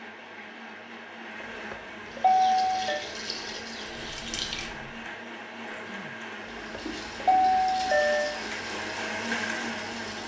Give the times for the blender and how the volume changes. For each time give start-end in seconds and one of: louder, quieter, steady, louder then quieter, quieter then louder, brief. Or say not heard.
0.0-10.2 louder.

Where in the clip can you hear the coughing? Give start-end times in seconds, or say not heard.
5.7-6.3.